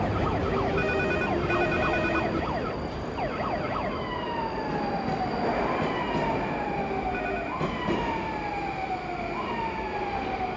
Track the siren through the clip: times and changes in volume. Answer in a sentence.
The siren can be heard from 0.0 to 10.5 s, at a steady volume.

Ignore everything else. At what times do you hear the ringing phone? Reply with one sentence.
You can hear the ringing phone from 0.4 to 2.4 s and from 6.8 to 7.6 s.